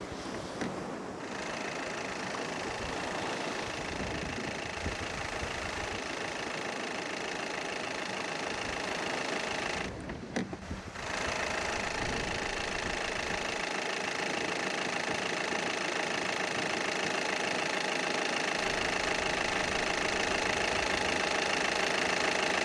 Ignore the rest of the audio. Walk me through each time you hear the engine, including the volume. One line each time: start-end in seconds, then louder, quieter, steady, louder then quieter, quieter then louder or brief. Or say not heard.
0.0-22.6 louder.